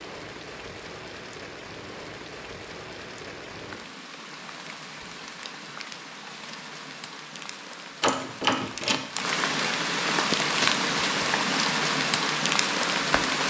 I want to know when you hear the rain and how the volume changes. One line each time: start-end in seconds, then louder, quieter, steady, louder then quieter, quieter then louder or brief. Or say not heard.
0.0-13.4 louder.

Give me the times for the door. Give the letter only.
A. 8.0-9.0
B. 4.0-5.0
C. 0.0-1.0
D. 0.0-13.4
A.